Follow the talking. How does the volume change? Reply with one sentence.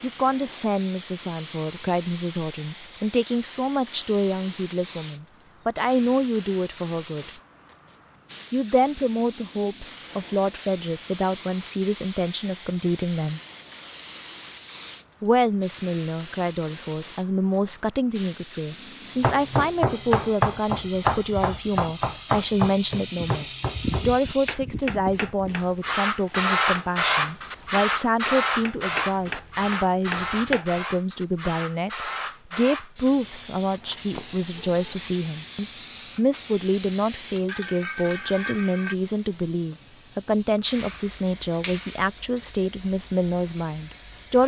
The volume of the talking stays about the same.